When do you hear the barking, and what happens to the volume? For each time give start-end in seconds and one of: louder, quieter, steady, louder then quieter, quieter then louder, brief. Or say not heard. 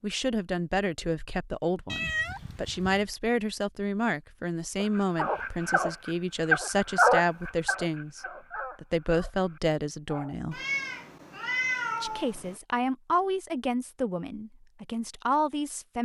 4.8-10.3 louder then quieter.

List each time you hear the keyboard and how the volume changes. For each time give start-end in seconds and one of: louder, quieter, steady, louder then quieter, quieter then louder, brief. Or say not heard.
not heard.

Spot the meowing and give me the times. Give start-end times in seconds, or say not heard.
1.9-3.0, 10.5-12.6.